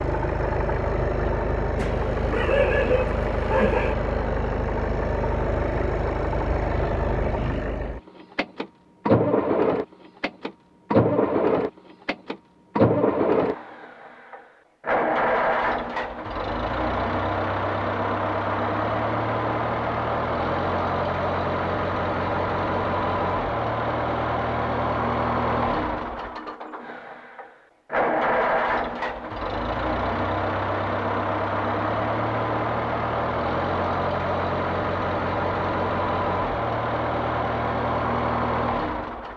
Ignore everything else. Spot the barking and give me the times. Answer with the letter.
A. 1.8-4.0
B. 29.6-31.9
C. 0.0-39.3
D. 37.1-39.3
A.